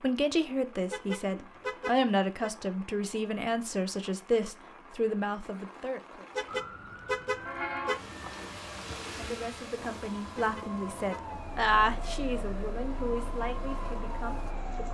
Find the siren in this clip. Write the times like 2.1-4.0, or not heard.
6.5-14.8.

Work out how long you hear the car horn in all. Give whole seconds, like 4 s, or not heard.
4 s.